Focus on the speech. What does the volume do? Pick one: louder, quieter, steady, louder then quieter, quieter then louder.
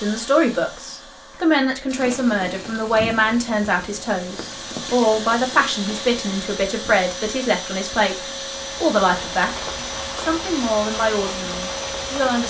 steady.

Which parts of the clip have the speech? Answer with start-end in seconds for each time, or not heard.
0.0-12.4.